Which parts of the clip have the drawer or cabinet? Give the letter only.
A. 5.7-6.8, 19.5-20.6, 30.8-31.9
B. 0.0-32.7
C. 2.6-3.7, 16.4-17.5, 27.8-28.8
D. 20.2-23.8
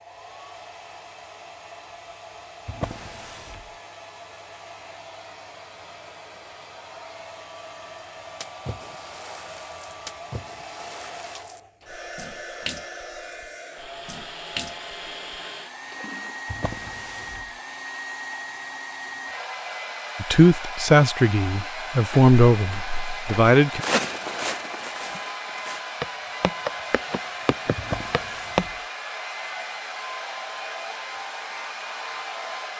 C.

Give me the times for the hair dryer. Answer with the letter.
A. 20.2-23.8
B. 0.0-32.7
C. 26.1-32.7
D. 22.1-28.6
B.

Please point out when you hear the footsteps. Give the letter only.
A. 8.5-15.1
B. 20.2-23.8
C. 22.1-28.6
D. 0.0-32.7
C.